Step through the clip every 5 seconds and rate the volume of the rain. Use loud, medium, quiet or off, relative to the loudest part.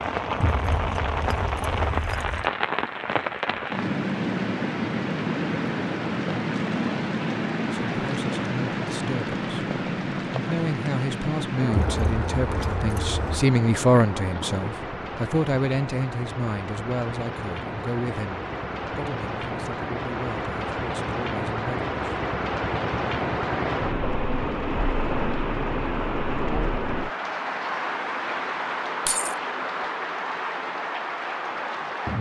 loud, loud, loud, medium, loud, loud, loud.